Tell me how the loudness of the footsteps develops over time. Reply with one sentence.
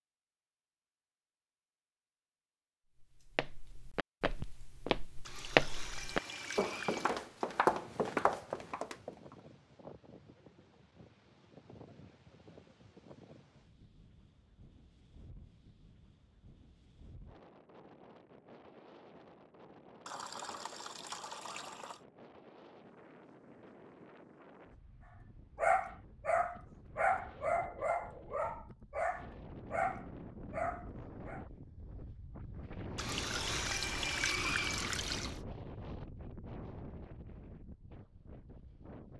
The volume of the footsteps goes up, then down.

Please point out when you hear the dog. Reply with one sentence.
You can hear the dog from 25.6 to 31.4 s.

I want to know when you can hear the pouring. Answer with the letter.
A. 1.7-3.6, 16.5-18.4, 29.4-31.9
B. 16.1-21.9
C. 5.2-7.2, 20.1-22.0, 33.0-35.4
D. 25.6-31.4
C.